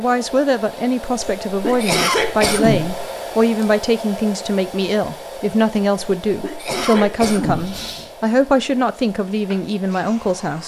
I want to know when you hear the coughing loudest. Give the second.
2 s.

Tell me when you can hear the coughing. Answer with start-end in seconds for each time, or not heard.
1.4-3.0, 6.2-7.8.